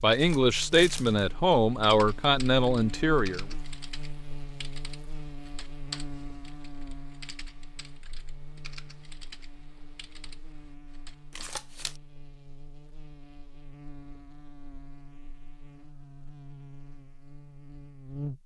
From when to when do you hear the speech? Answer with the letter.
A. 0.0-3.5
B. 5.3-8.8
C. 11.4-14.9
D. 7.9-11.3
A.